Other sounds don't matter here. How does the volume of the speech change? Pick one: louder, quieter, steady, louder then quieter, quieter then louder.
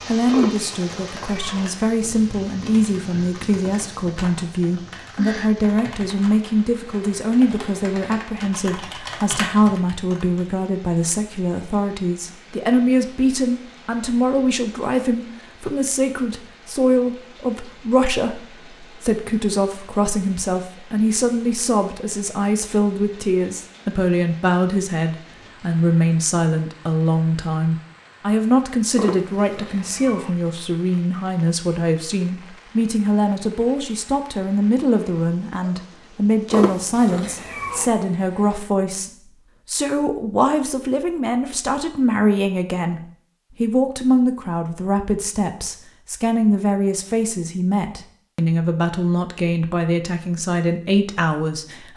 steady.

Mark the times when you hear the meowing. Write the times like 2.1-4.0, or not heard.
0.3-1.6, 28.9-30.3, 36.5-37.9.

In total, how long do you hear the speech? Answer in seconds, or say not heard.
52 s.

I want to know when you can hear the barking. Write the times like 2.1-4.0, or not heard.
not heard.